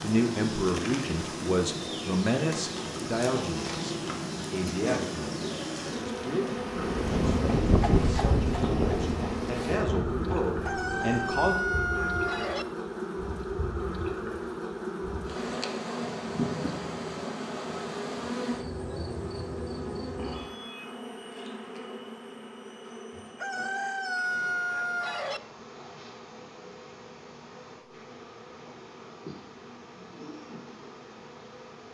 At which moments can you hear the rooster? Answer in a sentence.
The rooster can be heard from 10.6 to 12.7 s and from 23.4 to 25.4 s.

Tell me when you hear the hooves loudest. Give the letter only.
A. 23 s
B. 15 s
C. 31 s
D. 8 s
D.